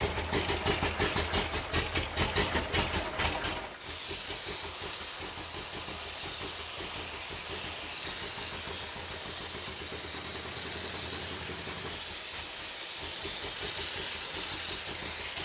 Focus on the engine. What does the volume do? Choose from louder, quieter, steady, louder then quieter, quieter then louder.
quieter.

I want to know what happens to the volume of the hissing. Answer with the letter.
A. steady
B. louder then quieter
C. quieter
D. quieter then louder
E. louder
A.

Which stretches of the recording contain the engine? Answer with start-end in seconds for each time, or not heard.
0.0-15.3.